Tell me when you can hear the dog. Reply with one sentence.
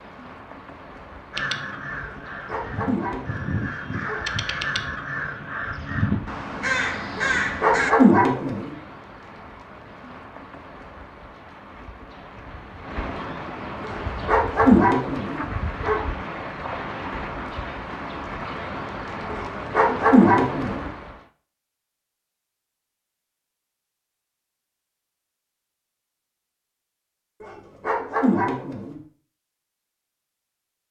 You can hear the dog from 2.0 to 4.2 s, from 7.2 to 8.8 s, from 13.8 to 16.0 s, from 19.3 to 20.9 s and from 27.4 to 29.0 s.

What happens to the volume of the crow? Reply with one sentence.
The volume of the crow goes up.